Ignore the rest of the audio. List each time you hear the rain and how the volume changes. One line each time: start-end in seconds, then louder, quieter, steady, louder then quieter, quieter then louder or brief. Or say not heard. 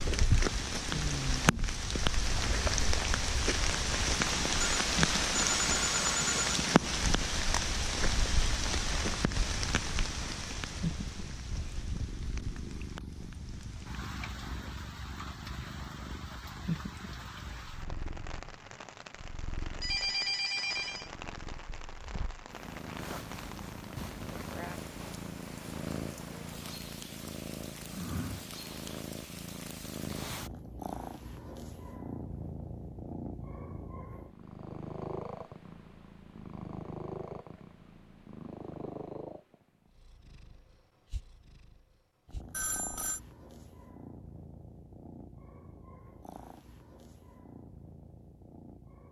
0.0-30.4 quieter.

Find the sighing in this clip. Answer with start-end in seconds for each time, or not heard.
0.9-1.8.